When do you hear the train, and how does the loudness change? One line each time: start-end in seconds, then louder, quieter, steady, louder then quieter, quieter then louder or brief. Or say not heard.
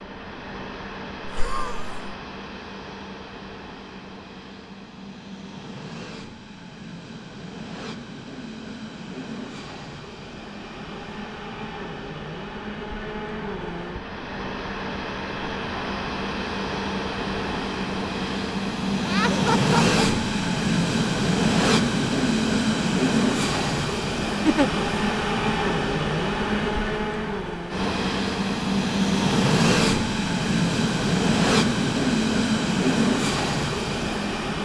0.0-34.5 louder.